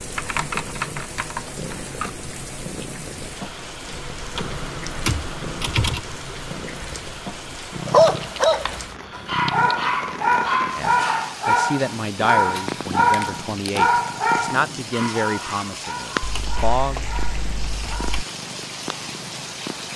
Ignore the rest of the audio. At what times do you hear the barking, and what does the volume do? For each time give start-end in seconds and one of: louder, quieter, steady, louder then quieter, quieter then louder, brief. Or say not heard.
7.8-18.2 quieter.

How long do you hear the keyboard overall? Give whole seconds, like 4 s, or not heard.
9 s.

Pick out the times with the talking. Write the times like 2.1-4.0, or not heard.
10.8-17.1.